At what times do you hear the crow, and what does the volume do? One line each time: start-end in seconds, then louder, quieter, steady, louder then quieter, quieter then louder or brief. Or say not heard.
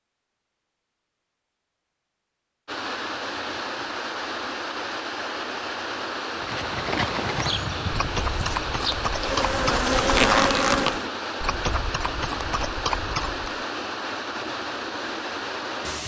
not heard.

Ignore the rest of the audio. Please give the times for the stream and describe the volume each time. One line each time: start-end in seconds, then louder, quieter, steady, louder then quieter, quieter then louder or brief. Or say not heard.
2.6-16.0 steady.